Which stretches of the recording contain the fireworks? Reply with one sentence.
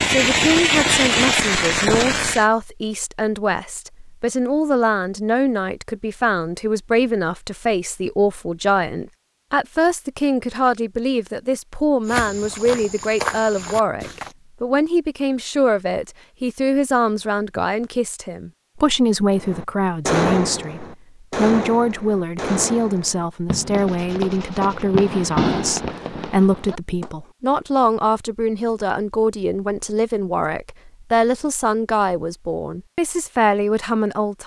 You can hear the fireworks from 0.0 to 2.5 s and from 19.4 to 27.1 s.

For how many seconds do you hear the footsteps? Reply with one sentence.
The footsteps can be heard for 2 seconds in total.